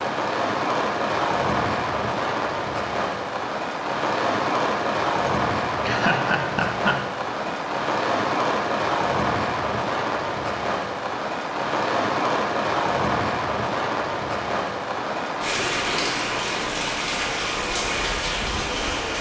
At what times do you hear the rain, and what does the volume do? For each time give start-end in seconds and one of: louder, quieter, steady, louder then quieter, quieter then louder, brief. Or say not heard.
0.0-19.1 steady.